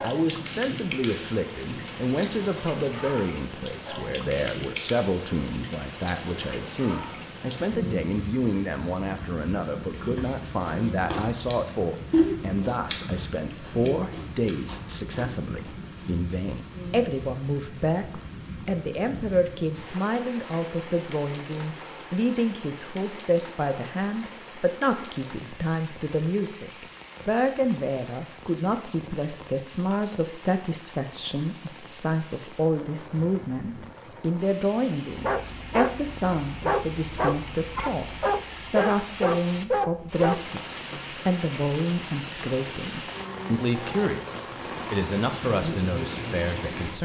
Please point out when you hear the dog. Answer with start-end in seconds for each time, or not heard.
35.1-40.5.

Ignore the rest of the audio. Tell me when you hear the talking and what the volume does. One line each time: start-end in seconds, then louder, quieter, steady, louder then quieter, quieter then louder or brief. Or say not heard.
0.0-46.9 steady.